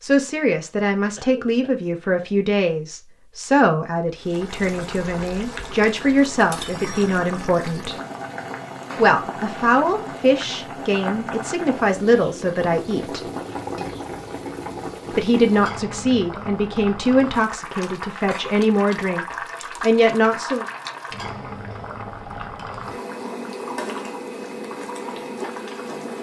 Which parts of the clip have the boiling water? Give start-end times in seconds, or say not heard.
4.2-26.1.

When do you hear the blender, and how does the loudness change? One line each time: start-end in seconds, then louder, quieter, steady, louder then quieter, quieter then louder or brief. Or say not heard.
not heard.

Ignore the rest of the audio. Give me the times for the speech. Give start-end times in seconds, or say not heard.
0.0-8.0, 8.9-13.2, 15.1-20.6.